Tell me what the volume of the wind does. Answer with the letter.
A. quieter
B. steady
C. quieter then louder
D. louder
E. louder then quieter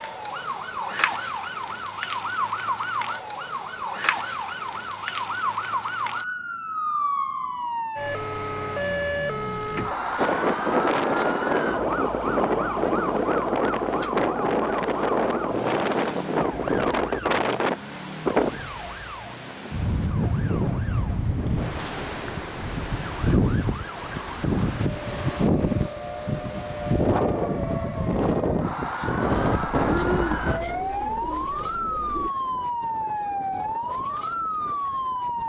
A.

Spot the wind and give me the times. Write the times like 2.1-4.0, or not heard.
10.2-35.4.